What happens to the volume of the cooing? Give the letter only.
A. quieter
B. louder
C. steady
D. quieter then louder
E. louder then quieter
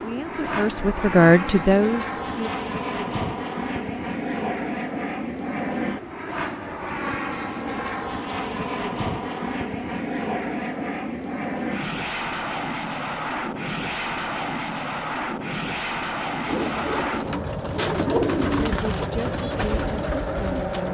E.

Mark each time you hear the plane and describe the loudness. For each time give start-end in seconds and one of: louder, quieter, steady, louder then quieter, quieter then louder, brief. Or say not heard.
0.0-20.9 steady.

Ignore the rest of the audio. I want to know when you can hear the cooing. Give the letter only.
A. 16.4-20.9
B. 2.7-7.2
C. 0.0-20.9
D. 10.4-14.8
A.